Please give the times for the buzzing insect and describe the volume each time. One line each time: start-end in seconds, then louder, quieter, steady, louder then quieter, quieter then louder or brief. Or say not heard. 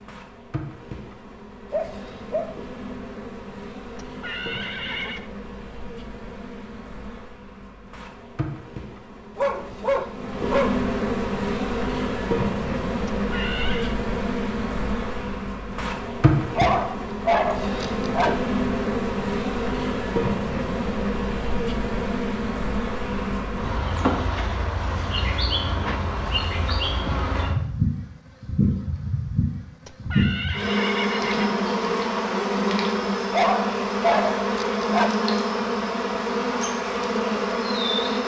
0.0-38.2 louder.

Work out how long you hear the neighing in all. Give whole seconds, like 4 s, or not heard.
4 s.